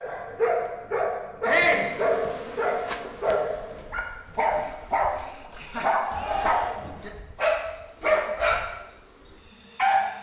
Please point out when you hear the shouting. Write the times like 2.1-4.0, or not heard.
1.4-1.9, 6.0-6.9.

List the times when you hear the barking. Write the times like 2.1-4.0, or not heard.
0.0-10.1.